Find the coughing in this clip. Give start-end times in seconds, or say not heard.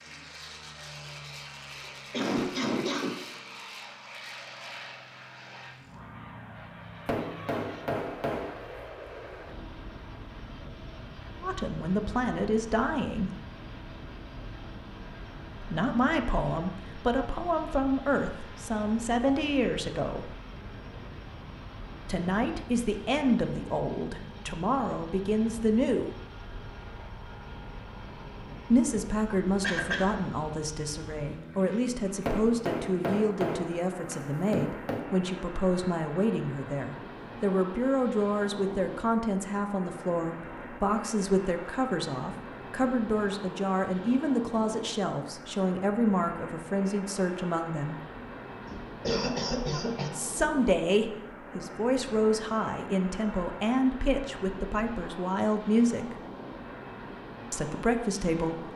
1.8-3.4, 29.6-30.1, 48.7-50.1.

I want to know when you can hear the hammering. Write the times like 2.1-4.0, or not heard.
7.0-8.7, 32.2-35.1.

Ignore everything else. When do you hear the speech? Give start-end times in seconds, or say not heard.
11.4-13.3, 15.6-20.4, 22.1-26.1, 28.7-48.0, 50.1-56.2, 57.5-58.6.